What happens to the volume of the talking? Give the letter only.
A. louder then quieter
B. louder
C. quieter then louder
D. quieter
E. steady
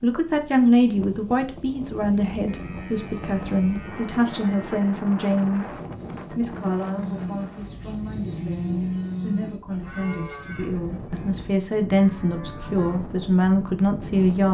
C.